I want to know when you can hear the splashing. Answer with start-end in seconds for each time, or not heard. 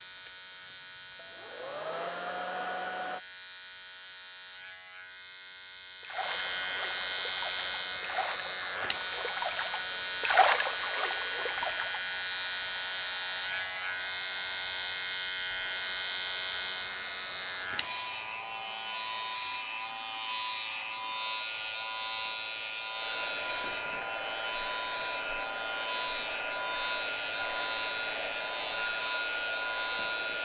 6.0-12.1.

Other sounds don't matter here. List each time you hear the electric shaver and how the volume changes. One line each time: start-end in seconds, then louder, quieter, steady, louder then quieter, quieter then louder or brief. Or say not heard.
0.0-30.4 louder.